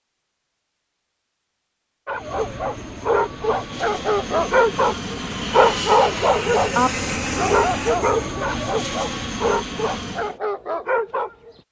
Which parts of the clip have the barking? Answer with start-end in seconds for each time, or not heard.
2.0-11.6.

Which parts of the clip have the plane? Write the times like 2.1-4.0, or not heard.
2.1-10.4.